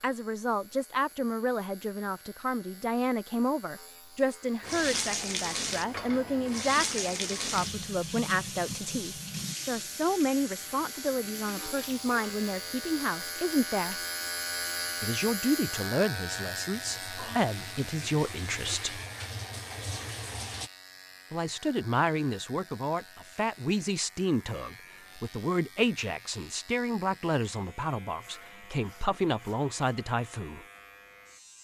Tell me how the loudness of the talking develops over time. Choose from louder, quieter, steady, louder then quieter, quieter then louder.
steady.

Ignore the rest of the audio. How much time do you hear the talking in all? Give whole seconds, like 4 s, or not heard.
27 s.